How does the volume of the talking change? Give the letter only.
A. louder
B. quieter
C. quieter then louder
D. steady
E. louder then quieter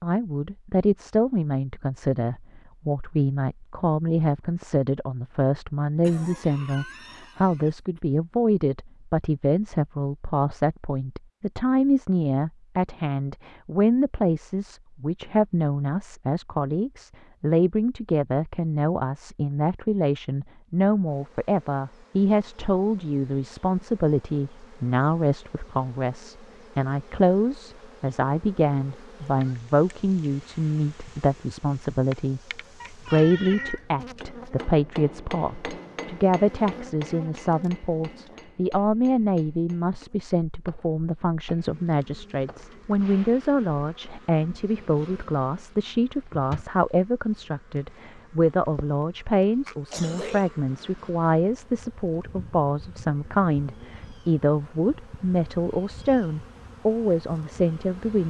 D.